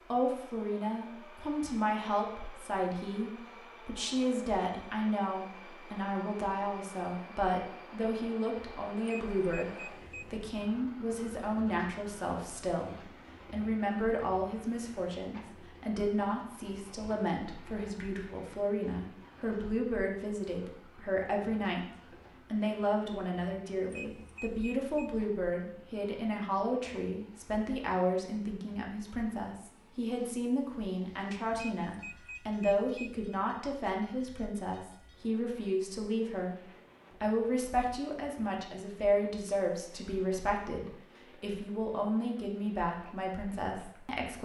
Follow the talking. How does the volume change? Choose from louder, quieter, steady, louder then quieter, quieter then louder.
steady.